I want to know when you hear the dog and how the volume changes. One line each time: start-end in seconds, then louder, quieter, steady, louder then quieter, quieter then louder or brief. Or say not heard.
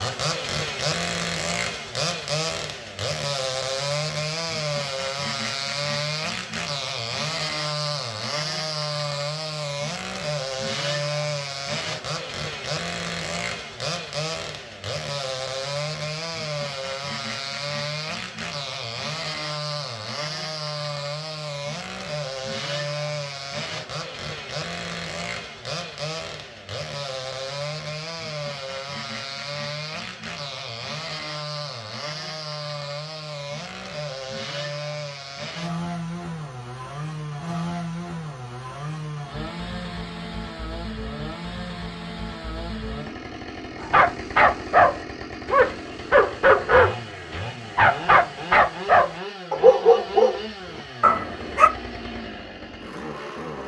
43.8-51.7 steady.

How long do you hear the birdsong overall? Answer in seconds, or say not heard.
not heard.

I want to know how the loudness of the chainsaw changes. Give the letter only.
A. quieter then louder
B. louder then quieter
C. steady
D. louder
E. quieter
E.